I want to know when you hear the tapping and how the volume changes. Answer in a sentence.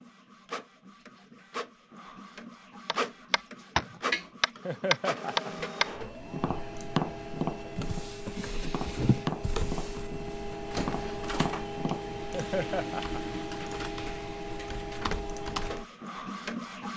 You can hear the tapping from 2.9 to 12.0 s, getting quieter.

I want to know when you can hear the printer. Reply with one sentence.
The printer can be heard from 0.0 to 16.9 s.